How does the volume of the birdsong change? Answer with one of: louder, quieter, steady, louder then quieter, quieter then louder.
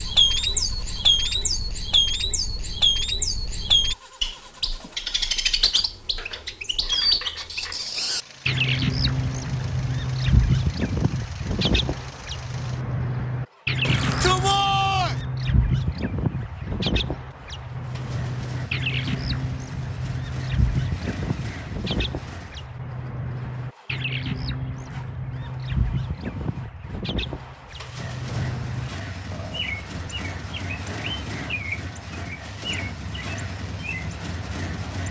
quieter.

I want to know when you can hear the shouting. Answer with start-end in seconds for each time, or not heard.
13.8-15.2.